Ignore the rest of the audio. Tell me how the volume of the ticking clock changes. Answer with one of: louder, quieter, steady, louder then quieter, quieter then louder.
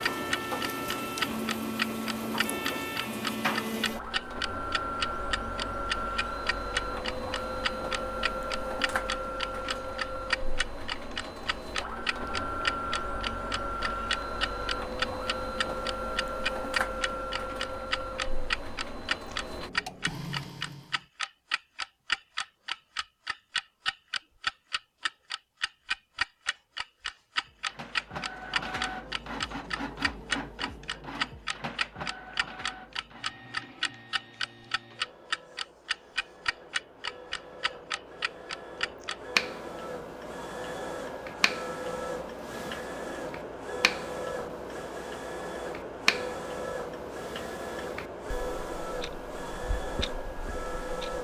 quieter.